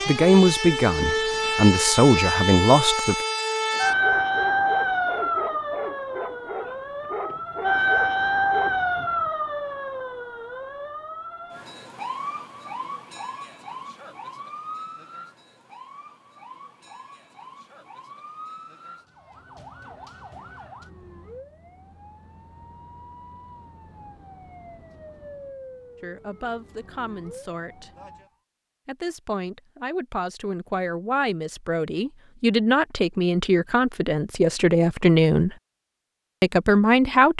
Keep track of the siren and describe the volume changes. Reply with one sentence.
The volume of the siren goes down.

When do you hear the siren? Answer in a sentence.
You can hear the siren from 0.0 to 28.3 s.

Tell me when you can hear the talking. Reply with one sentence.
You can hear the talking from 0.1 to 3.2 s, from 26.0 to 27.9 s, from 28.9 to 35.5 s and from 36.4 to 37.3 s.